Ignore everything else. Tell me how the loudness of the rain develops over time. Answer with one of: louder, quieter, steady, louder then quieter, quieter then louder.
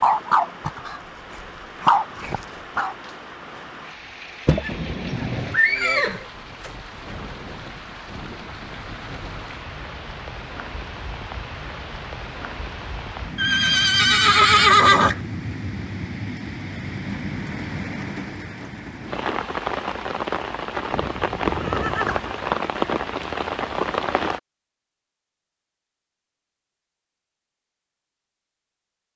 louder.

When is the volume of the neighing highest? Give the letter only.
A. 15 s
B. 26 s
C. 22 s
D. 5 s
A.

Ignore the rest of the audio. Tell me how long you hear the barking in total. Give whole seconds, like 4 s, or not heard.
3 s.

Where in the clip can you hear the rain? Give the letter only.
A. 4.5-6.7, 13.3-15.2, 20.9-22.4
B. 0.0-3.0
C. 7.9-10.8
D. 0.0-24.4
D.